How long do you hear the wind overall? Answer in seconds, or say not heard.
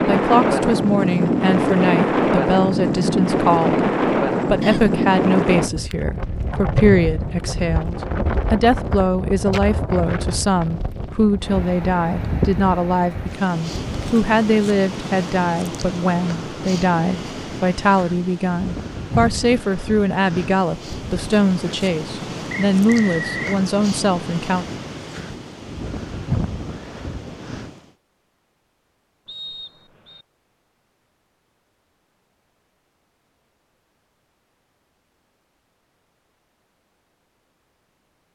28 s.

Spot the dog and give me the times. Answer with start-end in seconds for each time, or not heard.
not heard.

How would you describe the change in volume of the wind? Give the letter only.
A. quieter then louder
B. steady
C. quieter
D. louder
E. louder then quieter
C.